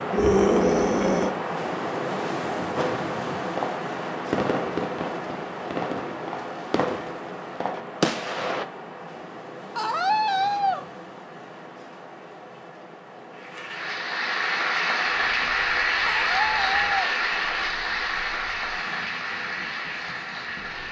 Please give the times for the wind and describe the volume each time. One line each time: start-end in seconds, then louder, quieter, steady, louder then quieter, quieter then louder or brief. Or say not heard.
0.0-20.8 quieter.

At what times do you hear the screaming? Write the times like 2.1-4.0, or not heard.
0.1-1.3, 9.8-10.8, 16.1-16.9.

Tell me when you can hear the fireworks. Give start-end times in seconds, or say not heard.
2.8-8.7.